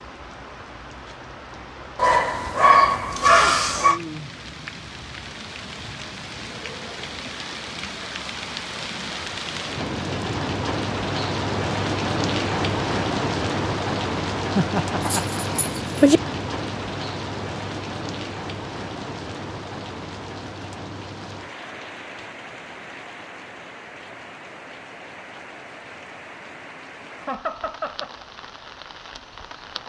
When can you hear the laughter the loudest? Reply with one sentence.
The loudest moment of the laughter is at 15 seconds.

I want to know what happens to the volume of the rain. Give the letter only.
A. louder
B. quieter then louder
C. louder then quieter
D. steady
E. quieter
C.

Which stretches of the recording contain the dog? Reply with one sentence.
You can hear the dog from 1.9 to 4.0 s and from 15.0 to 16.2 s.